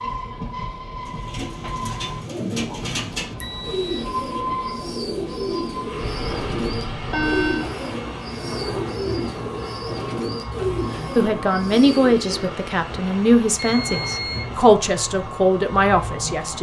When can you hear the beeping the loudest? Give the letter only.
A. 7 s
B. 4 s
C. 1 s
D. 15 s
A.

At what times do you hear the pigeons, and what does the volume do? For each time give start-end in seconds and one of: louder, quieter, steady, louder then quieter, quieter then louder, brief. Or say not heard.
1.1-12.6 steady.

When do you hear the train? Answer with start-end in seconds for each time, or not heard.
0.0-16.5.